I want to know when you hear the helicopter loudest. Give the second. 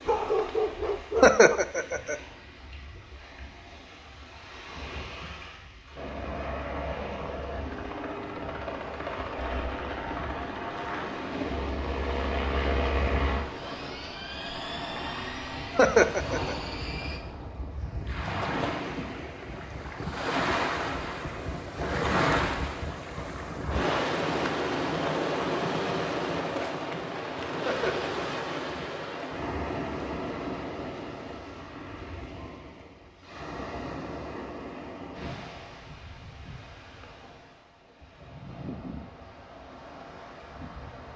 13 s.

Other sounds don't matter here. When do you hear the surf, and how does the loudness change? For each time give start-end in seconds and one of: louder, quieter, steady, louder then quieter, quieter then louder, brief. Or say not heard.
0.0-41.1 louder then quieter.